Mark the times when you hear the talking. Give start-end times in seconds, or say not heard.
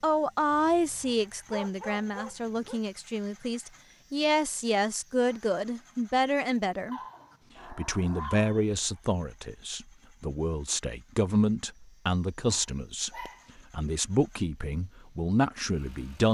0.0-7.0, 7.7-13.1, 13.7-16.2.